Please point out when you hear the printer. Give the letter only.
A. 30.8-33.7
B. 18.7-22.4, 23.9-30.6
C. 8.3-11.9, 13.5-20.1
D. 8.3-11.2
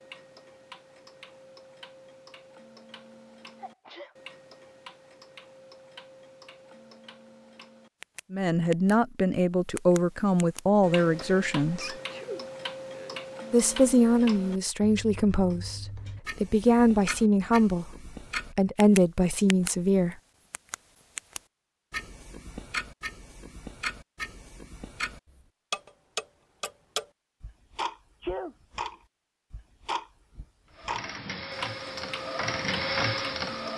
A.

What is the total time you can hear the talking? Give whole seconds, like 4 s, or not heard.
10 s.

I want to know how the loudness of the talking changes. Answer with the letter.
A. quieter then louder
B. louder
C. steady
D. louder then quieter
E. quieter
C.